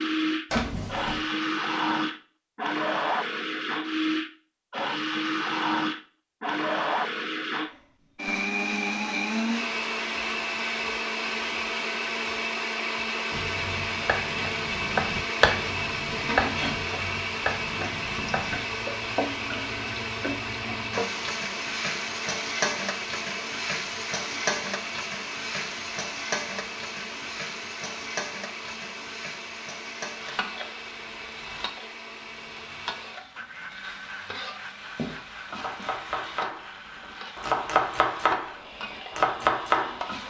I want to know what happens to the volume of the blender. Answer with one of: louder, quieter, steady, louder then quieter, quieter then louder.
quieter.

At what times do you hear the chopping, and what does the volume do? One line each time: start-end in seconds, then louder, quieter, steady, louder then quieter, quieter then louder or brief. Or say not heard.
13.3-18.6 louder then quieter
35.0-40.0 louder.